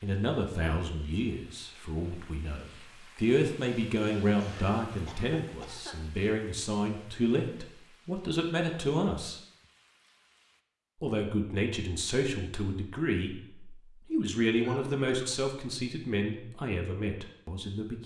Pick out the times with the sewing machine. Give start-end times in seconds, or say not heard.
not heard.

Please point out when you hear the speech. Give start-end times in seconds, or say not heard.
0.0-9.4, 11.0-18.0.